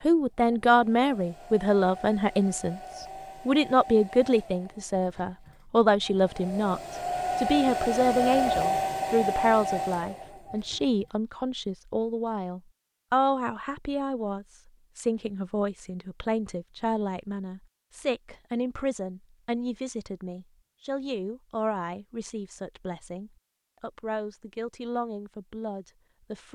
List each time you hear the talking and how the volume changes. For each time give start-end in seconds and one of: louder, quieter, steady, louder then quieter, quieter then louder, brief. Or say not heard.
0.1-26.5 quieter.